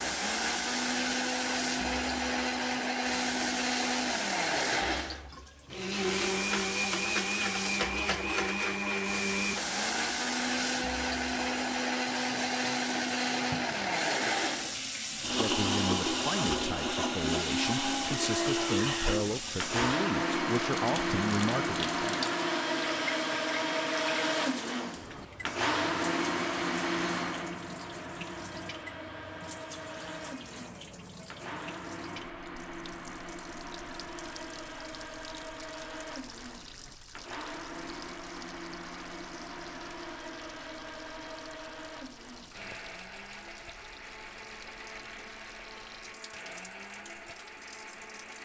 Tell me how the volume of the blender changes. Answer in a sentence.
The volume of the blender goes down.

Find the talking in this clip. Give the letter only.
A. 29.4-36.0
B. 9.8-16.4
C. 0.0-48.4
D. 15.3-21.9
D.